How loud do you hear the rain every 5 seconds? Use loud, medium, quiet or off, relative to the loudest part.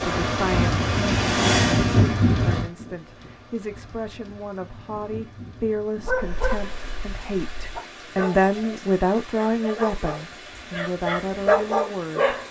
loud, quiet, quiet.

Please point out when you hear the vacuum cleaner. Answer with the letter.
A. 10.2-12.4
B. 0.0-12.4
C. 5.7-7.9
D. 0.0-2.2
D.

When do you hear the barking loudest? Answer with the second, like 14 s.
12 s.